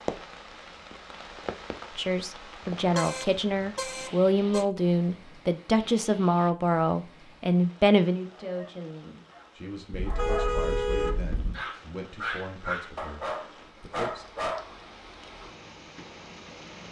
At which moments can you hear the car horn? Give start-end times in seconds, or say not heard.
2.8-4.7, 9.9-11.6.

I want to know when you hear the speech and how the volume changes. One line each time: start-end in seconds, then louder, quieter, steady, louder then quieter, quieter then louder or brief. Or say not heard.
1.9-14.2 quieter.